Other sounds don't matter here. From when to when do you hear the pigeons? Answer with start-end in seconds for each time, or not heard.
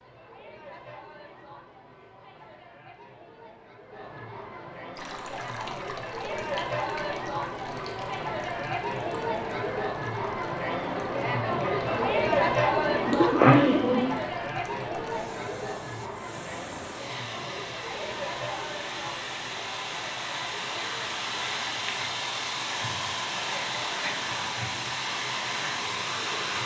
11.8-14.2.